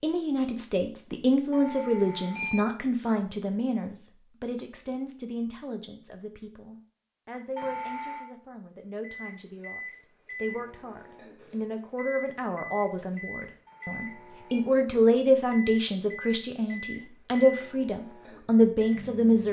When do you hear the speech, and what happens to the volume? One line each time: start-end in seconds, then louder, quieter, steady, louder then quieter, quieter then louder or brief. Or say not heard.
0.0-19.4 quieter then louder.